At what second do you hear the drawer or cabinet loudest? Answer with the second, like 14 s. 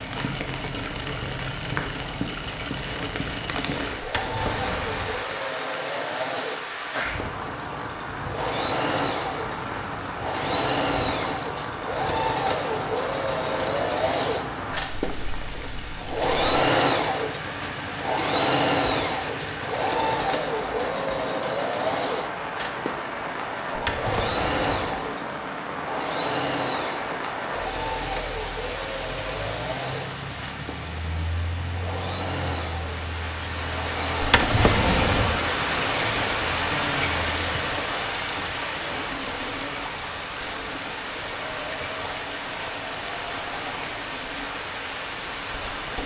35 s.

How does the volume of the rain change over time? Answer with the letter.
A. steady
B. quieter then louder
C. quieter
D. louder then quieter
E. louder
A.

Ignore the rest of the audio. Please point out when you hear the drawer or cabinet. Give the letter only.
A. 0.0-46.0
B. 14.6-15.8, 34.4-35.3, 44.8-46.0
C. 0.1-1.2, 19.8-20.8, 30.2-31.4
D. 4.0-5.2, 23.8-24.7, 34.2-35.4
D.